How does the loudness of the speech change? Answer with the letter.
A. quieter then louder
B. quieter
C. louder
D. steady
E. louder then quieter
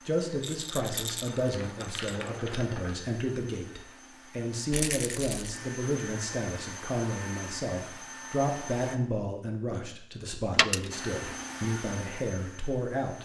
D.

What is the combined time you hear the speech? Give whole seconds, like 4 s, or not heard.
13 s.